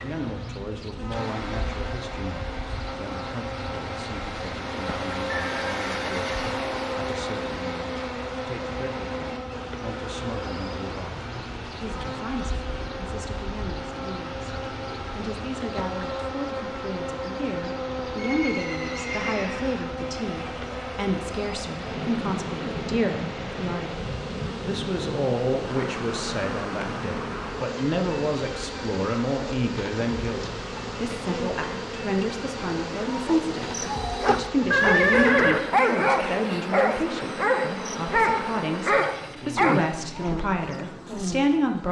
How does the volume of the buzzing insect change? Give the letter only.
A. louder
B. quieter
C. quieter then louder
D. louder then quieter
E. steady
E.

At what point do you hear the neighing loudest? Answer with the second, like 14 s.
35 s.